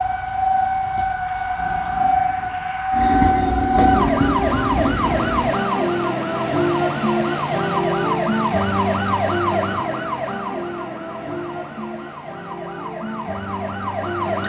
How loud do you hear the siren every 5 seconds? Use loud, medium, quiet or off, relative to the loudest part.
loud, loud, medium.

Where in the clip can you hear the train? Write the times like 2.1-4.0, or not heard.
2.9-5.5.